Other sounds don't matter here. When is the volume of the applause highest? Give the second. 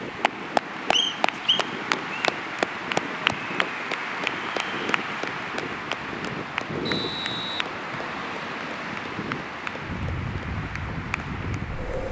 3 s.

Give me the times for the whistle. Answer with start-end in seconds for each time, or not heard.
0.9-2.3, 6.8-8.3.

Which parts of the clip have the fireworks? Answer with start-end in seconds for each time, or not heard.
not heard.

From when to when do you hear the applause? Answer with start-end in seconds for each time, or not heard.
0.0-12.0.